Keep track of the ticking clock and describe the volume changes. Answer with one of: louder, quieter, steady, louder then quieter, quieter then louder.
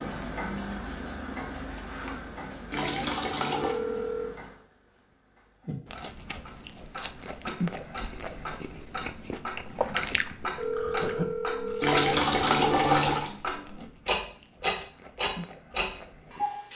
quieter then louder.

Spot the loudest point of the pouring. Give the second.
13 s.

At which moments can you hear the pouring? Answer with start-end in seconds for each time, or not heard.
2.7-3.8, 11.8-13.3.